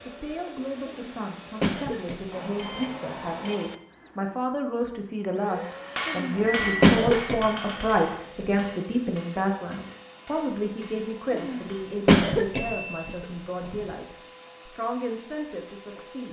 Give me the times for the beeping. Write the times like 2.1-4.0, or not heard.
2.3-3.8, 6.3-7.0, 12.7-13.1.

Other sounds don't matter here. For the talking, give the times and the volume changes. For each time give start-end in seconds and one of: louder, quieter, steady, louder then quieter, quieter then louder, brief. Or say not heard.
0.1-16.2 louder then quieter.